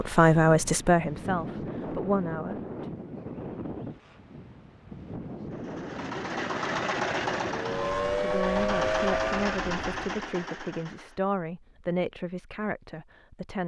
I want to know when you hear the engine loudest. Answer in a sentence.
The volume of the engine peaks at 7 seconds.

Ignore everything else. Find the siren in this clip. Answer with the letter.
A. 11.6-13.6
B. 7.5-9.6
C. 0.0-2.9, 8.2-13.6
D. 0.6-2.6
B.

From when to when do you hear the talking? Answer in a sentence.
The talking can be heard from 0.0 to 2.9 s and from 8.2 to 13.6 s.